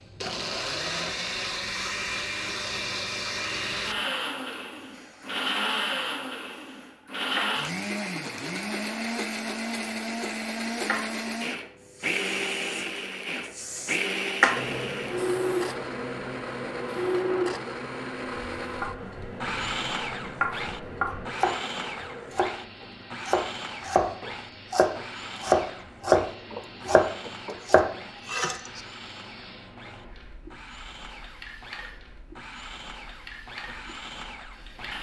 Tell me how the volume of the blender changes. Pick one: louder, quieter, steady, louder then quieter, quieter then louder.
quieter.